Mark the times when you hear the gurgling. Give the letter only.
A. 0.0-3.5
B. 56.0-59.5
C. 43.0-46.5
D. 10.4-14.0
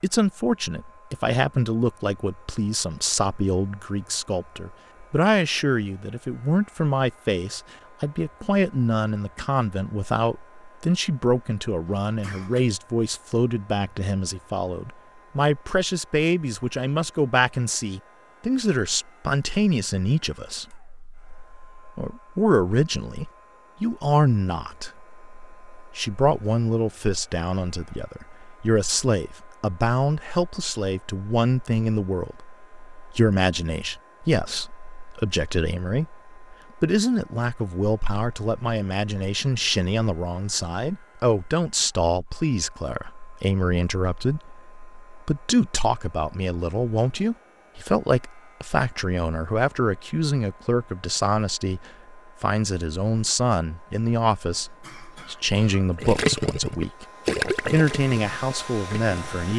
B.